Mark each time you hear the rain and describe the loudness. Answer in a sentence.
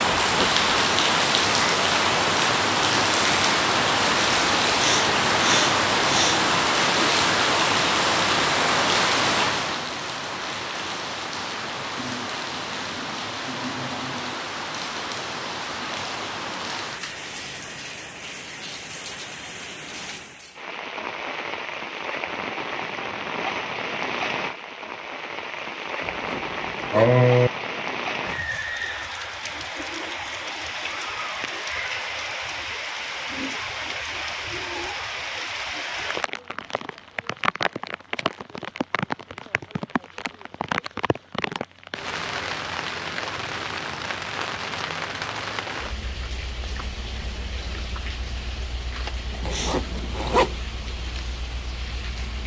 The rain can be heard from 0.0 to 52.4 s, getting quieter.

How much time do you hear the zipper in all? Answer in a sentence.
You can hear the zipper for 3 seconds altogether.